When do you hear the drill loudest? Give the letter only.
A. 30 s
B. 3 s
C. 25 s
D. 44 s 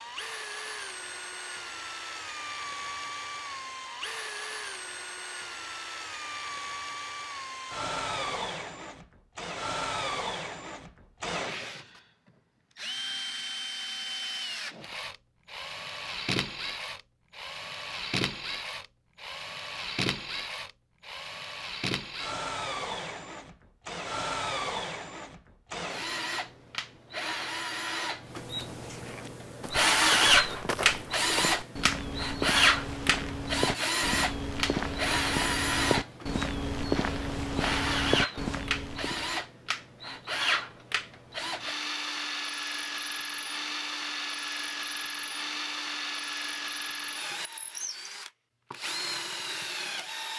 A.